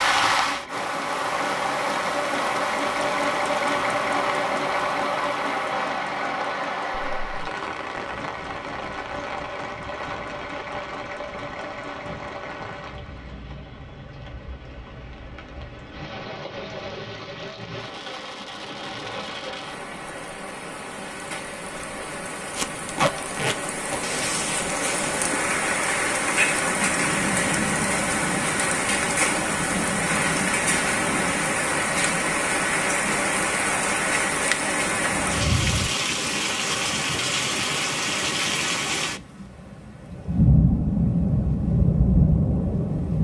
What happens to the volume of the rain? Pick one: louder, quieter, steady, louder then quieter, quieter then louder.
quieter then louder.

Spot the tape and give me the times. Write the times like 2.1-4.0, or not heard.
22.6-24.0.